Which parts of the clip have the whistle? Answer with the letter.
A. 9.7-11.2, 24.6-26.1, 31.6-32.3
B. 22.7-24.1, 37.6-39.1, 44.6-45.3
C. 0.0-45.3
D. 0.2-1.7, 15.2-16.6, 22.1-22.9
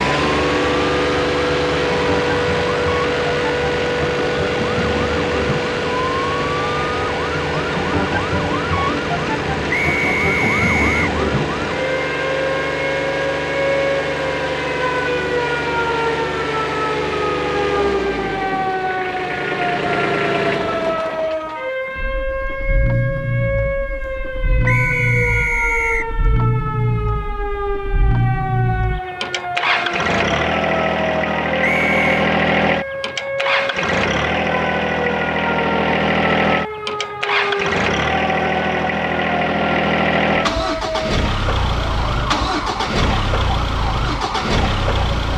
A.